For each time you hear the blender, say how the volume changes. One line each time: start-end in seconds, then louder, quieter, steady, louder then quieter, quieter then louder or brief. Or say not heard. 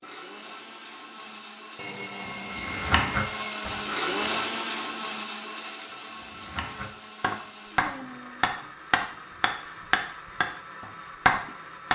0.0-11.8 louder then quieter.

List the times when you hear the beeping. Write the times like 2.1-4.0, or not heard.
1.8-3.7.